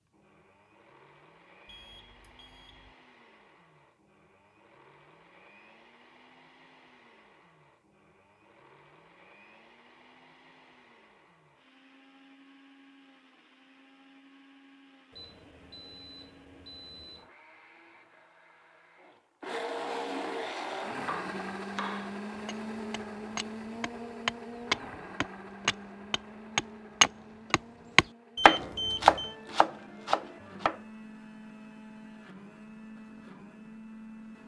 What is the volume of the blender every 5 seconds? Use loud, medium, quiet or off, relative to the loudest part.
quiet, quiet, quiet, medium, loud, medium, medium.